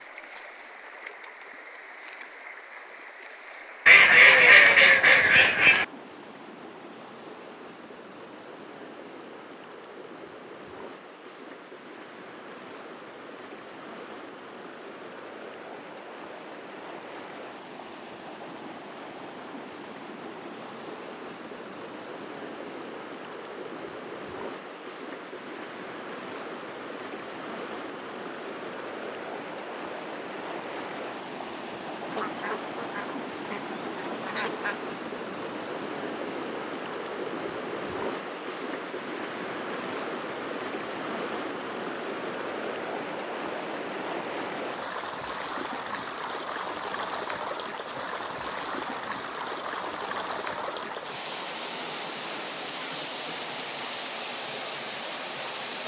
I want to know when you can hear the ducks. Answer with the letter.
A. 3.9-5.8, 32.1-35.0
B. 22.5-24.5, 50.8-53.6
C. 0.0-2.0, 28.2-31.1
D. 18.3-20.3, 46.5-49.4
A.